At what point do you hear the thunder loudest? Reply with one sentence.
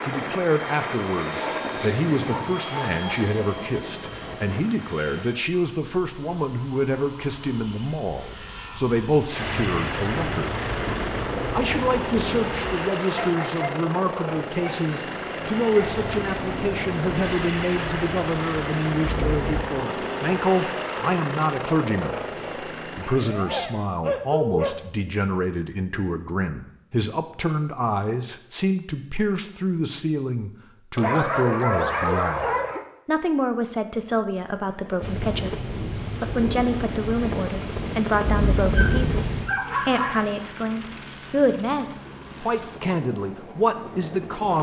The volume of the thunder peaks at 39 seconds.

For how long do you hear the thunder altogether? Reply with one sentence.
You can hear the thunder for 12 seconds altogether.